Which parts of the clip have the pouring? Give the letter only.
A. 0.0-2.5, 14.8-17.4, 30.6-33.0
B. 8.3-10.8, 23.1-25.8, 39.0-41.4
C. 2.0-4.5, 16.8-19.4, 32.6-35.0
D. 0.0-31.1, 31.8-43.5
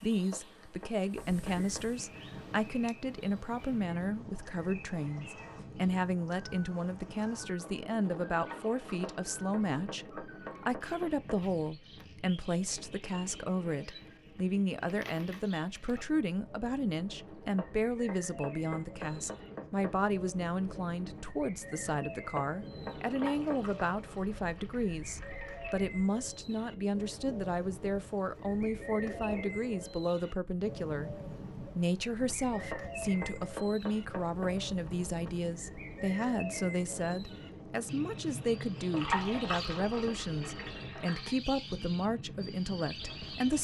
B.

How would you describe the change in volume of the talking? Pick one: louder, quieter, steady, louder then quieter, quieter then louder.
steady.